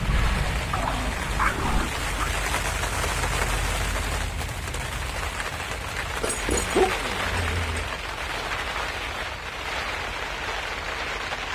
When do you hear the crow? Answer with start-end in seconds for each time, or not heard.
0.0-1.9.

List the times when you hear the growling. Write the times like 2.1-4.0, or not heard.
0.7-2.3, 6.2-7.9.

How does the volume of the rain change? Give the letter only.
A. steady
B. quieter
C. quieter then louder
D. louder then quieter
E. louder
A.